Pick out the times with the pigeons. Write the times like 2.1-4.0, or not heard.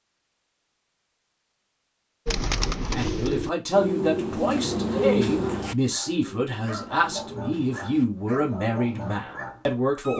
2.2-9.2.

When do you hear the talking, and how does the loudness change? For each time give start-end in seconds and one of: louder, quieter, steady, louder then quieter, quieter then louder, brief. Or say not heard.
2.8-10.1 steady.